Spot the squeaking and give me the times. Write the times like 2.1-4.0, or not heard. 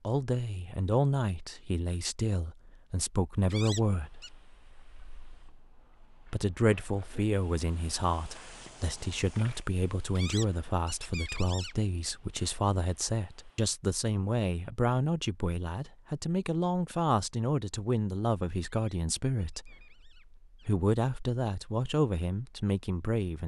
3.5-4.3, 10.2-11.8, 18.6-20.7.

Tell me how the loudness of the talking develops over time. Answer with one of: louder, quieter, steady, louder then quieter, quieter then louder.
steady.